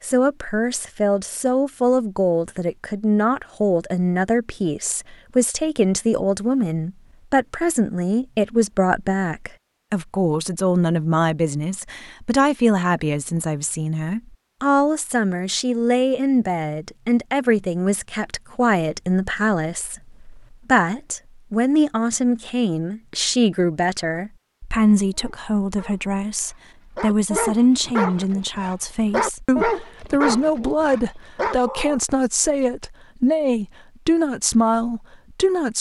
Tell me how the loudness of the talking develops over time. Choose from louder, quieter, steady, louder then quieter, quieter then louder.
steady.